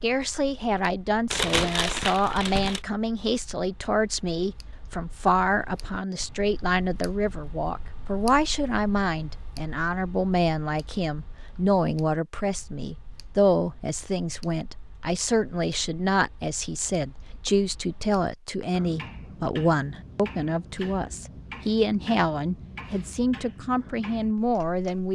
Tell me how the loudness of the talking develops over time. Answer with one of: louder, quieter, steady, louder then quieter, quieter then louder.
steady.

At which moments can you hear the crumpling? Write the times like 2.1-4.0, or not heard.
1.3-2.8.